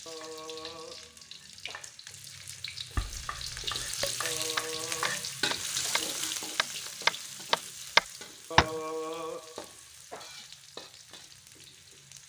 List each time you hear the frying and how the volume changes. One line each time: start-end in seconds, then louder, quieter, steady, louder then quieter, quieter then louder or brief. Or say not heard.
0.0-12.2 louder then quieter.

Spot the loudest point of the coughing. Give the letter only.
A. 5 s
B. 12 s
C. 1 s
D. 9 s
D.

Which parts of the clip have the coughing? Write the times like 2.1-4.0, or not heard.
0.1-1.9, 4.2-6.1, 8.5-10.3.